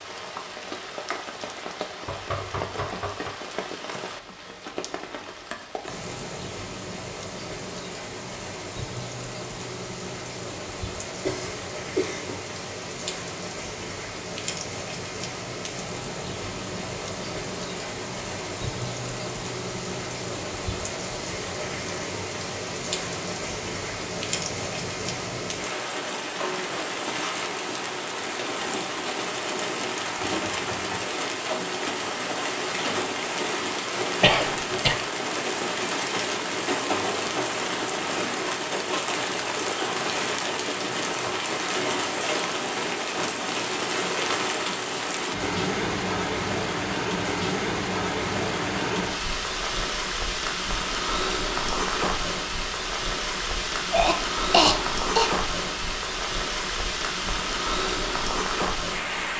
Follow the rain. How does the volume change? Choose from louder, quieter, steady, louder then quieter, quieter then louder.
louder.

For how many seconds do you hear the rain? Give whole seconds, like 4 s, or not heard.
59 s.